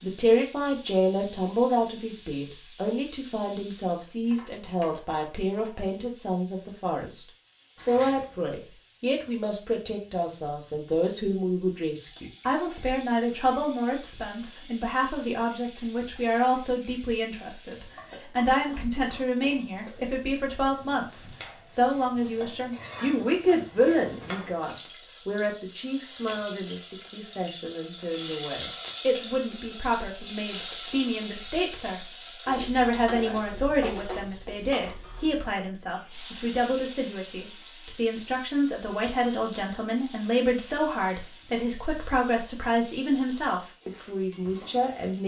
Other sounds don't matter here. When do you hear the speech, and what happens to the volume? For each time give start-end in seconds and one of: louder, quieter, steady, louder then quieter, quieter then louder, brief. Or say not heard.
0.0-45.2 steady.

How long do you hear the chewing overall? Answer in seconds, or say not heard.
not heard.